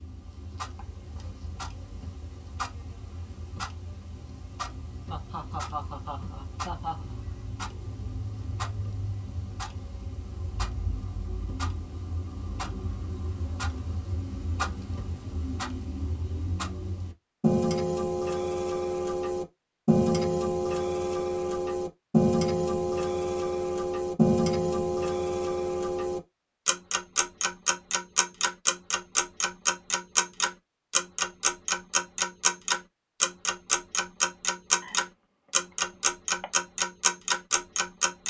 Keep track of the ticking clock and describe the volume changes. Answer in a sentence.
The volume of the ticking clock goes up.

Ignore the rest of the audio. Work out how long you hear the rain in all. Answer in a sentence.
The rain can't be heard in this clip.